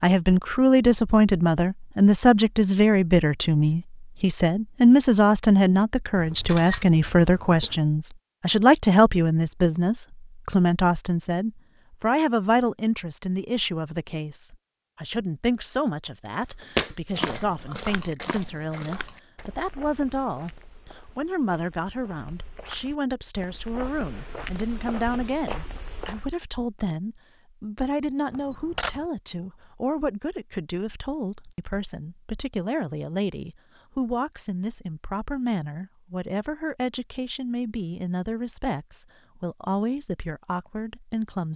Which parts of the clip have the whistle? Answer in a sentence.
The whistle can't be heard in this clip.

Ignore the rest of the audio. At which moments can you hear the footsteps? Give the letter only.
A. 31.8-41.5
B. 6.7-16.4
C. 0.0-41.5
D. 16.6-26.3
D.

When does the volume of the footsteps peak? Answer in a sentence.
The volume of the footsteps peaks at 17 seconds.